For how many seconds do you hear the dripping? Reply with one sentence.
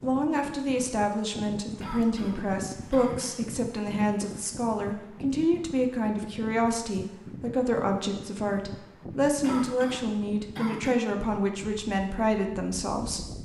You can't hear the dripping here.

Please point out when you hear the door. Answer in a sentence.
You can't hear the door here.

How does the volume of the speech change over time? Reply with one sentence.
The volume of the speech stays about the same.